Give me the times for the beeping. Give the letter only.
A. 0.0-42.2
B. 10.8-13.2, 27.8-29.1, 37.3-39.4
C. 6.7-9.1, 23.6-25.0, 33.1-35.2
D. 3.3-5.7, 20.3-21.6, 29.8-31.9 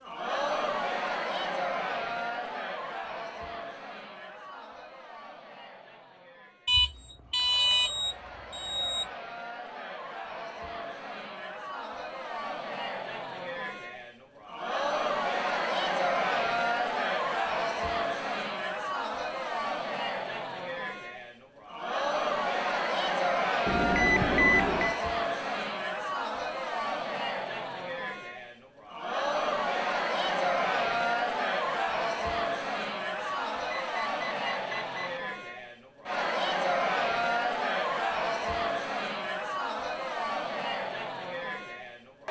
C.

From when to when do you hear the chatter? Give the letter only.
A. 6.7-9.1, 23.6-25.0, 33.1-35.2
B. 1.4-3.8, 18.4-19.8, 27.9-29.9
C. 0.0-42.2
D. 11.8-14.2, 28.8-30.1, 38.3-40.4
C.